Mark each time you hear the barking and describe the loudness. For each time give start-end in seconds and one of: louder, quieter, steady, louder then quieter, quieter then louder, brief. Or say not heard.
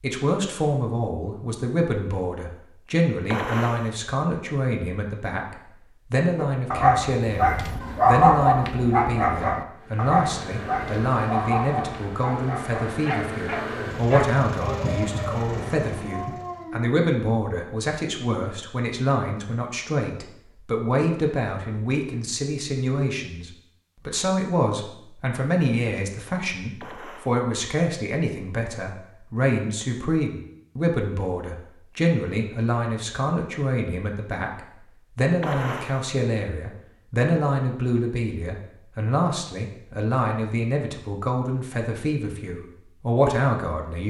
6.3-16.9 quieter.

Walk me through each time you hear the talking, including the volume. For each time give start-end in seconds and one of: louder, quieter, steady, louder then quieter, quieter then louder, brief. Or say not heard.
0.0-44.0 steady.